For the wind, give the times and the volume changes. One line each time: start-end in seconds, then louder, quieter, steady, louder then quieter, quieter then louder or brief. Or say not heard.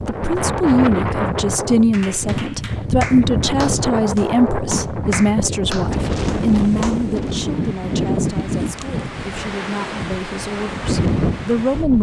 0.0-11.9 steady.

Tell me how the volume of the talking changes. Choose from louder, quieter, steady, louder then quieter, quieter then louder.
quieter.